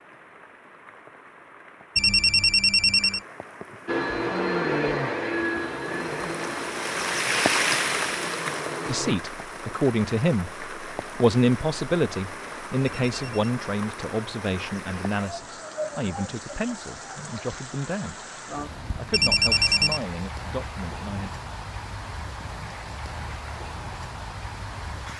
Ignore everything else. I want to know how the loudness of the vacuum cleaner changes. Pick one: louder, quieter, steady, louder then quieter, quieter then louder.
quieter.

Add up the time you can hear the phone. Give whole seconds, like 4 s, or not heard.
3 s.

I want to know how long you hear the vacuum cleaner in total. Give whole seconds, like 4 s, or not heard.
5 s.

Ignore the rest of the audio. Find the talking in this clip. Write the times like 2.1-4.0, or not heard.
8.8-18.2, 18.9-21.3.